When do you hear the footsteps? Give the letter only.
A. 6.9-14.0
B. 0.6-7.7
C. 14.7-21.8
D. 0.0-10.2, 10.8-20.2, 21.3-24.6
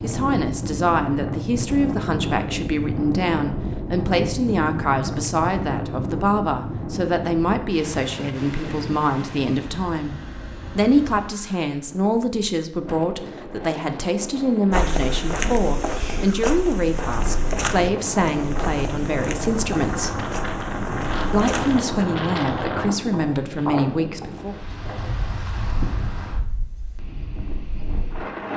C.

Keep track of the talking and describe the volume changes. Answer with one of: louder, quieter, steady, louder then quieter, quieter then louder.
steady.